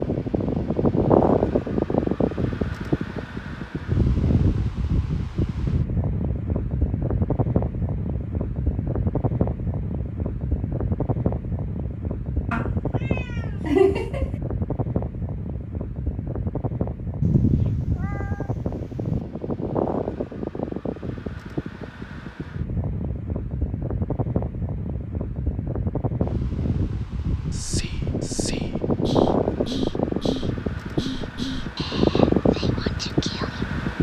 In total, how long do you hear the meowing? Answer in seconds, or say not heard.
4 s.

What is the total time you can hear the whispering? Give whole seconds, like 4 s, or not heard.
6 s.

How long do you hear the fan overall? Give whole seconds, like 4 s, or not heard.
34 s.